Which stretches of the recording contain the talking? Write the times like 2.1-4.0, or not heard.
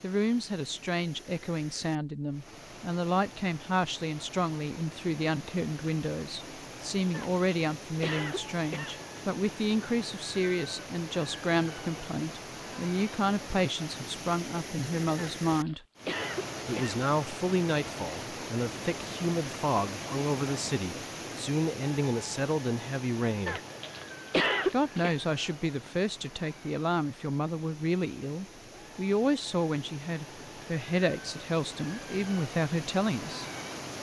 0.0-15.8, 16.6-23.6, 24.6-33.5.